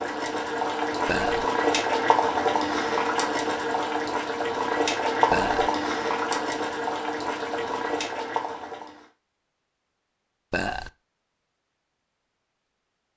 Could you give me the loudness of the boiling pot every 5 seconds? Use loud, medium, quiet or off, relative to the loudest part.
loud, loud, off.